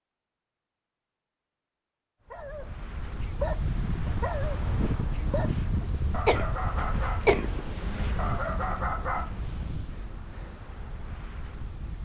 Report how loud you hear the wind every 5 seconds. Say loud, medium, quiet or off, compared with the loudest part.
loud, loud, medium.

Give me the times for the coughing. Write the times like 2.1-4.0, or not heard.
5.8-7.6.